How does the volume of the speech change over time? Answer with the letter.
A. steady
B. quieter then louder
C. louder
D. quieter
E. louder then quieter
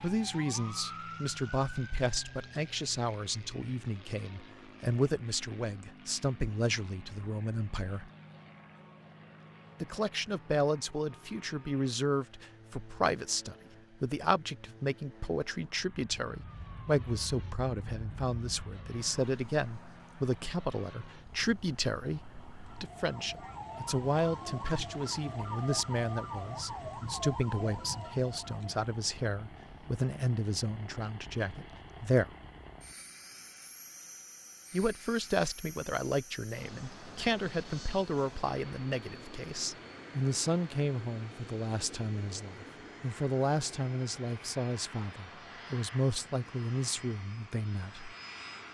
A.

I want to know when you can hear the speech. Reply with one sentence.
The speech can be heard from 0.0 to 8.1 s, from 9.8 to 32.3 s and from 34.7 to 48.1 s.